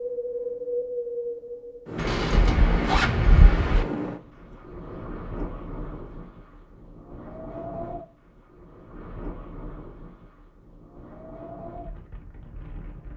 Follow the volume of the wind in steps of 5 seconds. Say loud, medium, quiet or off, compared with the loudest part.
loud, medium, quiet.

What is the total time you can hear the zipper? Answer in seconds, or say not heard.
2 s.